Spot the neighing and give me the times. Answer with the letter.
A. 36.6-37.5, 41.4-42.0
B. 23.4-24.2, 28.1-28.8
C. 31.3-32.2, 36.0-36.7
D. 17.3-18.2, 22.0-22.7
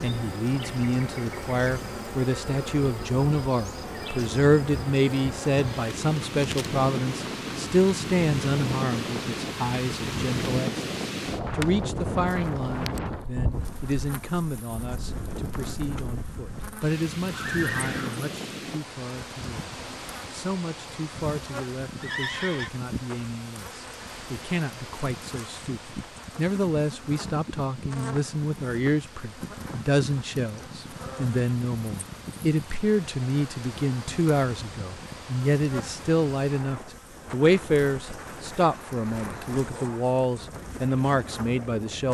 D.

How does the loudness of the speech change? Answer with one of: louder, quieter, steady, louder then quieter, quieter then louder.
quieter then louder.